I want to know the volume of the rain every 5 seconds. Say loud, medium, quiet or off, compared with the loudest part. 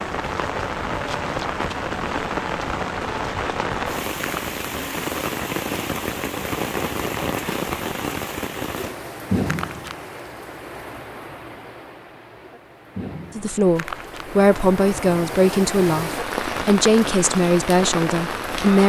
loud, loud, medium, loud.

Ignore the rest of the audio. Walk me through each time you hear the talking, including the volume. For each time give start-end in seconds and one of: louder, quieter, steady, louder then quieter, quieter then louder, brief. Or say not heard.
13.3-18.8 steady.